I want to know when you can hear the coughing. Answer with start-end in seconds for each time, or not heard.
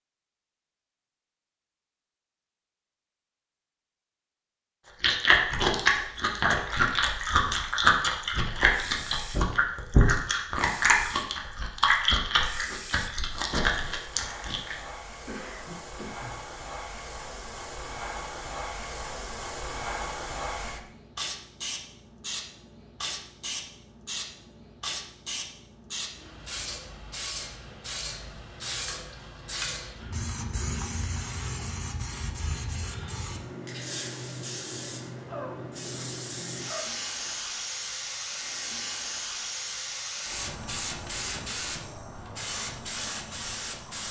15.2-16.3, 35.2-37.4.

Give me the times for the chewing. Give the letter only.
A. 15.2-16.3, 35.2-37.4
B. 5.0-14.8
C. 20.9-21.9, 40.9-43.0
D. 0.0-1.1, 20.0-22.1
B.